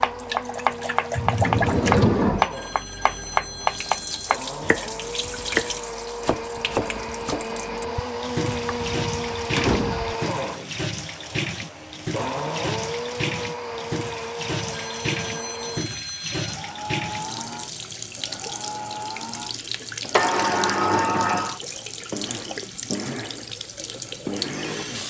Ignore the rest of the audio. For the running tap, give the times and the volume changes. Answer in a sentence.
The running tap can be heard from 0.0 to 25.0 s, at a steady volume.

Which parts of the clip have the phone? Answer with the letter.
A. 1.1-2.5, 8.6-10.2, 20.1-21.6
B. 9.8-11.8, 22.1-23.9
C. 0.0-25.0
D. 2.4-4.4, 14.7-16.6
D.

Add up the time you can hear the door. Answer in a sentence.
You can hear the door for 4 seconds altogether.